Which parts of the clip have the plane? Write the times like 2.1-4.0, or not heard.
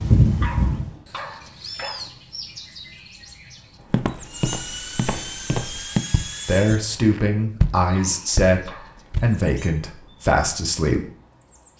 4.2-6.8.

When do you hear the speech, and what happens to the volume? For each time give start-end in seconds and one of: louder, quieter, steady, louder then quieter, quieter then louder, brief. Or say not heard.
6.5-11.1 steady.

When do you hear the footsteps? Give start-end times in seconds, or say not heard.
3.9-9.4.